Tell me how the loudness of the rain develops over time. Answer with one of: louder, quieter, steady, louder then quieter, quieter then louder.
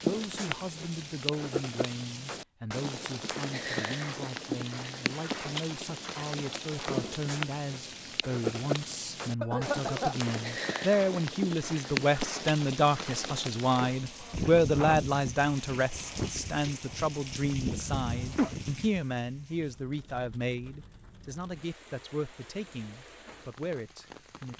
quieter.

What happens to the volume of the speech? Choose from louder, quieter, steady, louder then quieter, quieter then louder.
louder then quieter.